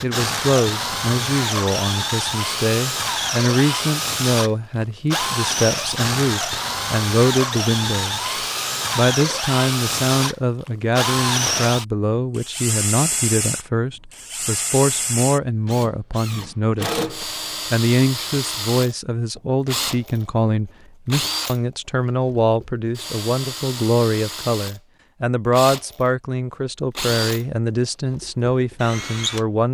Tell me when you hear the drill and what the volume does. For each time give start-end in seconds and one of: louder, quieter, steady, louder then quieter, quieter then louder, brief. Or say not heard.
0.0-29.4 quieter.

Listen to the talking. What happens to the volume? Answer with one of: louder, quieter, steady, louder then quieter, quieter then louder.
steady.